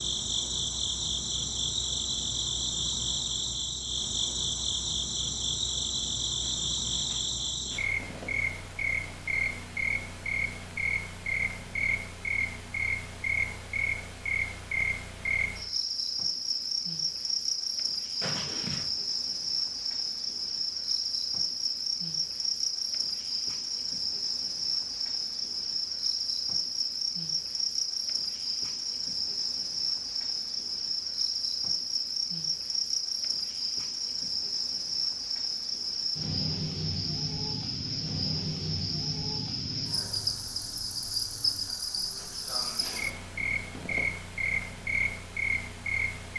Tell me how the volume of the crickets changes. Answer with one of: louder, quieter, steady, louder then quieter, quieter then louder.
steady.